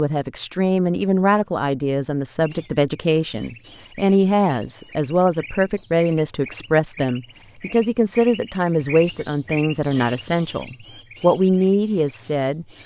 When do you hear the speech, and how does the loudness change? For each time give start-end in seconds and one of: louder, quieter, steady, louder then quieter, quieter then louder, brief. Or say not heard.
0.0-12.7 steady.